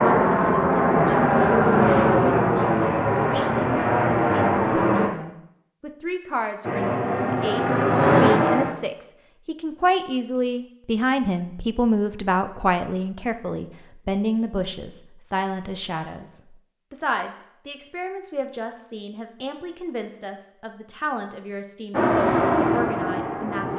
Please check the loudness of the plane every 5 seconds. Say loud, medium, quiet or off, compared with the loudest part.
loud, loud, off, off, loud.